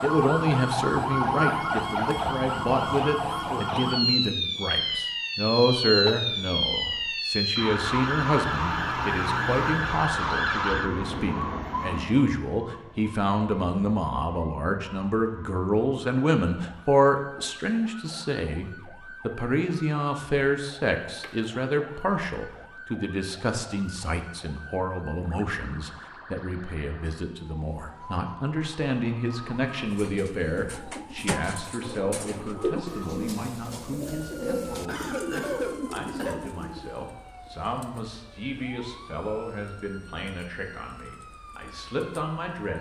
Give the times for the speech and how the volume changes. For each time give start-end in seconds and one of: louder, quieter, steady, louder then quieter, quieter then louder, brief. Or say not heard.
0.0-42.7 quieter.